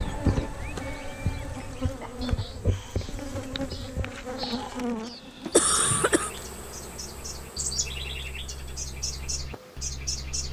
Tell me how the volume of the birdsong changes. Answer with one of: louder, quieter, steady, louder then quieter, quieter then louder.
louder.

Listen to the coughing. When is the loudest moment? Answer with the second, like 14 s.
6 s.